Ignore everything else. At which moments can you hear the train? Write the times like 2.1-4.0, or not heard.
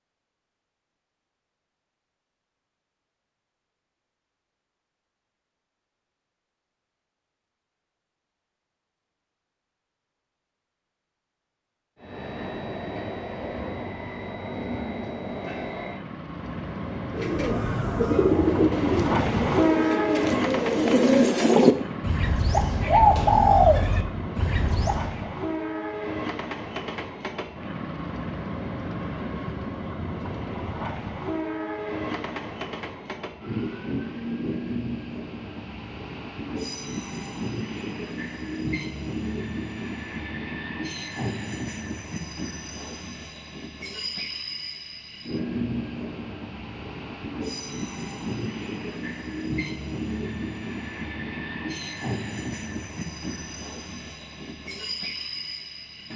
11.9-56.1.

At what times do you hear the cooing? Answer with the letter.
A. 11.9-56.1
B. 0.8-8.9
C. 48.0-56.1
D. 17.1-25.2
D.